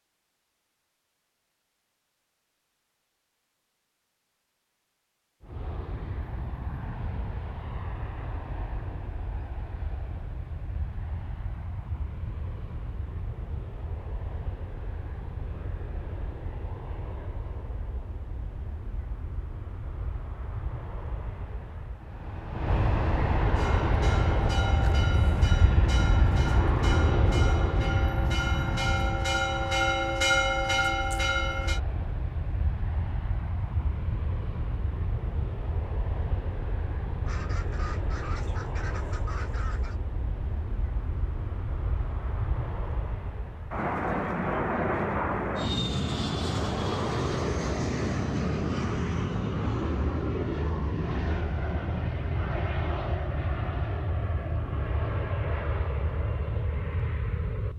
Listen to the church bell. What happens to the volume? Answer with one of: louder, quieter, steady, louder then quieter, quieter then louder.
louder.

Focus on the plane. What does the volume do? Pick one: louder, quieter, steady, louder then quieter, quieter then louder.
louder.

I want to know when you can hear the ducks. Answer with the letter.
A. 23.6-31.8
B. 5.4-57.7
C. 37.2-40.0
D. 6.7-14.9
C.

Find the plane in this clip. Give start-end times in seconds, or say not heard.
5.4-57.7.